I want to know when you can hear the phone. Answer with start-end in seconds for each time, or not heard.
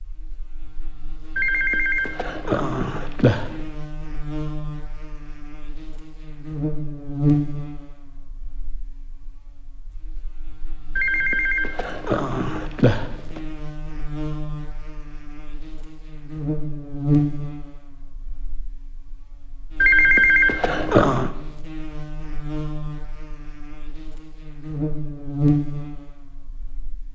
1.4-3.5, 10.9-13.4, 19.8-21.3.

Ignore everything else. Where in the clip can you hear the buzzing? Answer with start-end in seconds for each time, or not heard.
0.0-27.1.